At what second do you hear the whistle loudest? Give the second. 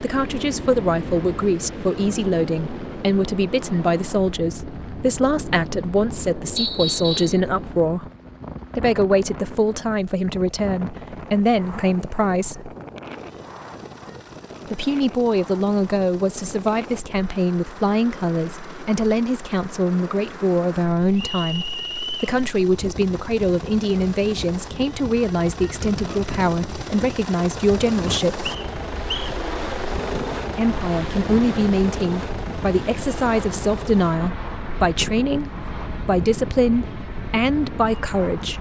7 s.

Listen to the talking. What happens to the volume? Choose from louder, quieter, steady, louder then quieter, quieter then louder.
steady.